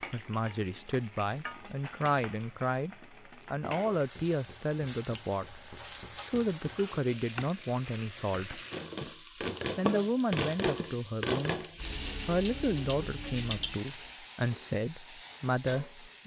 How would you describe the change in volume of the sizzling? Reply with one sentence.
The loudness of the sizzling goes up, then down.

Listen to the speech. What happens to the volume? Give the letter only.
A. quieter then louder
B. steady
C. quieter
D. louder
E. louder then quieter
B.